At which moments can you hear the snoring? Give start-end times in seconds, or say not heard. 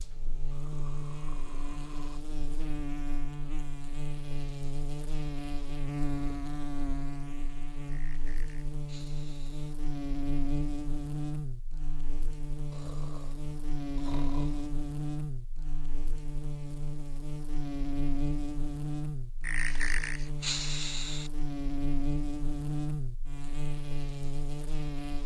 0.5-2.2, 7.9-9.8, 12.7-14.7, 19.4-21.3.